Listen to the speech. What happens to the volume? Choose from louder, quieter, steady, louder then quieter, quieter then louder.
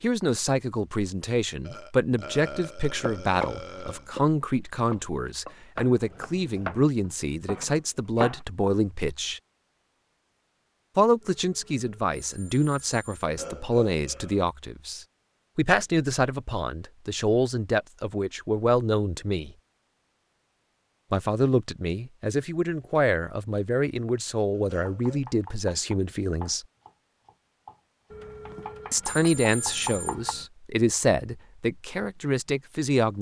steady.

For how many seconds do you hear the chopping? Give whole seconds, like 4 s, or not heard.
11 s.